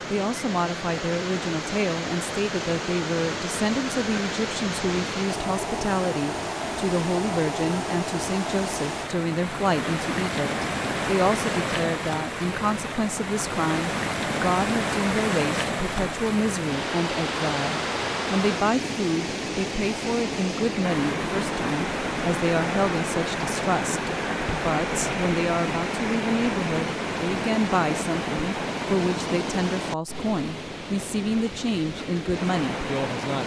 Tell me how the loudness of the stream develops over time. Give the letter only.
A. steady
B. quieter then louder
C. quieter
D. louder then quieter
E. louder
A.